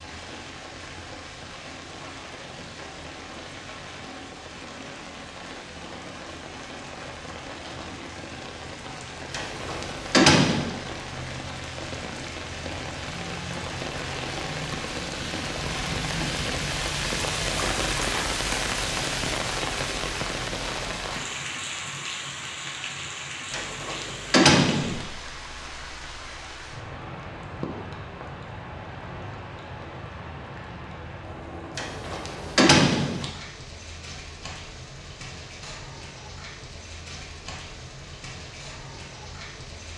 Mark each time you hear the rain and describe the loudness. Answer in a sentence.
You can hear the rain from 0.0 to 39.9 s, getting louder then quieter.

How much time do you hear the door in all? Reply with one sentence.
You can hear the door for 4 seconds altogether.